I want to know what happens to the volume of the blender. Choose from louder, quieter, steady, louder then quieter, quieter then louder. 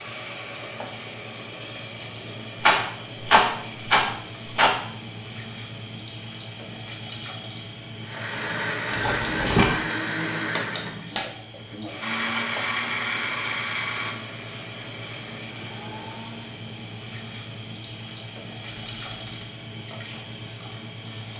quieter.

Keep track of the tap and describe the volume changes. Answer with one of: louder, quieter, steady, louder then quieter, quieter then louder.
steady.